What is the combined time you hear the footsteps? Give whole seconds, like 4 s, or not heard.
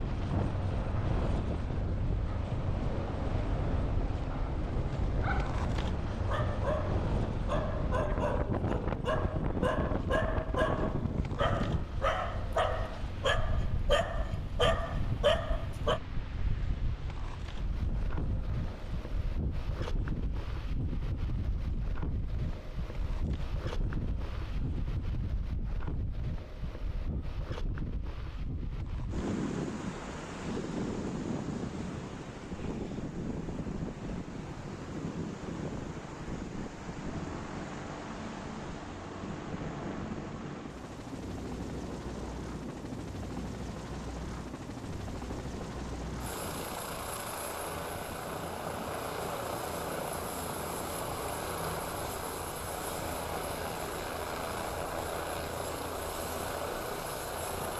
not heard.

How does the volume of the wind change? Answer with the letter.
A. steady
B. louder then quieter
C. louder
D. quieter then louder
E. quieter
E.